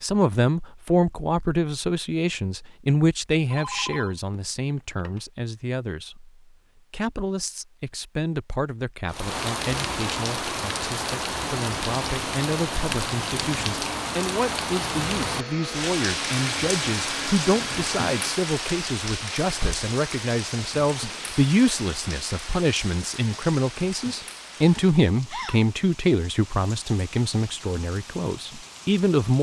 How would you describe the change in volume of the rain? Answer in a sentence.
The loudness of the rain goes down.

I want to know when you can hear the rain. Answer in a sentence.
You can hear the rain from 9.1 to 29.3 s.